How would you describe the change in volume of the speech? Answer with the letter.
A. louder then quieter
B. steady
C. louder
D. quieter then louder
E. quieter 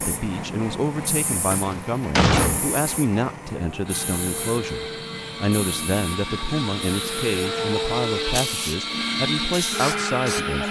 B.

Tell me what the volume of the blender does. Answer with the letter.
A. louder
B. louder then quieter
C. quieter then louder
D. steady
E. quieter
A.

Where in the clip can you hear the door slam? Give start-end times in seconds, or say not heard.
1.5-2.6.